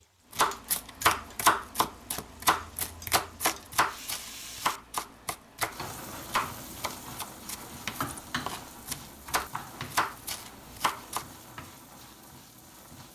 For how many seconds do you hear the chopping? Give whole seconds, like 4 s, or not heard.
11 s.